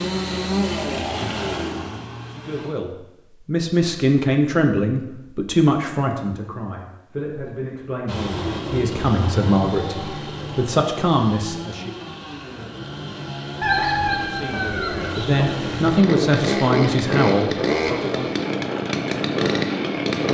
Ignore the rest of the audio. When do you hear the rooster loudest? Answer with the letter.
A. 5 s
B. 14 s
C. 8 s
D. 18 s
B.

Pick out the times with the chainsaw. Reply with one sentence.
You can hear the chainsaw from 0.0 to 2.7 s and from 8.1 to 20.3 s.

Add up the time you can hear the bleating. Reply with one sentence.
You can't hear the bleating here.